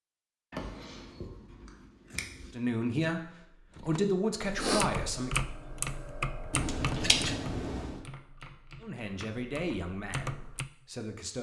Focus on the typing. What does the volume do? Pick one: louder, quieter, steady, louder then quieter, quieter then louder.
quieter then louder.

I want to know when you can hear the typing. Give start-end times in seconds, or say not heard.
3.8-10.7.